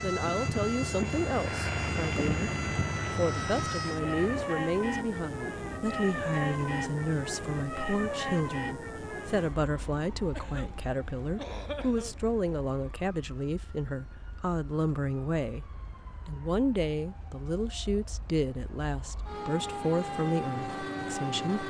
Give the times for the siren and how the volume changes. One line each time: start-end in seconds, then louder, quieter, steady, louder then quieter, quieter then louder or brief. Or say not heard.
0.0-21.6 quieter then louder.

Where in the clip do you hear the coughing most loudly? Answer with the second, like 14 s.
12 s.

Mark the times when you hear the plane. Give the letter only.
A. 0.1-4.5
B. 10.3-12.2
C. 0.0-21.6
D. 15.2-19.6
A.